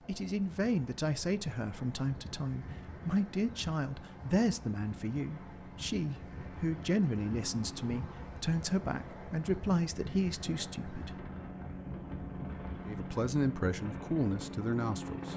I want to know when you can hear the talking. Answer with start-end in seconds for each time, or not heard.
0.1-11.2, 12.8-15.3.